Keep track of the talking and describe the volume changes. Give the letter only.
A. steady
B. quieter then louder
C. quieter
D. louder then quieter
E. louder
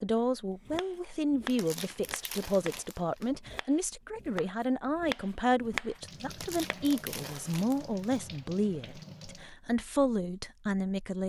A.